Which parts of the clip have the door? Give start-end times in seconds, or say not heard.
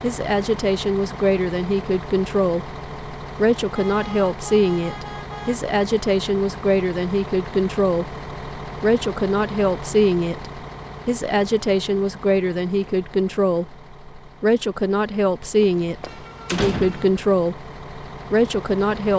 15.6-17.2.